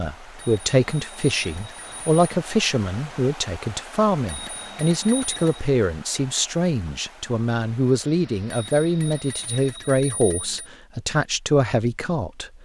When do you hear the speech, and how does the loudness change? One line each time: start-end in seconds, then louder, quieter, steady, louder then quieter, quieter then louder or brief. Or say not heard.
0.0-12.5 steady.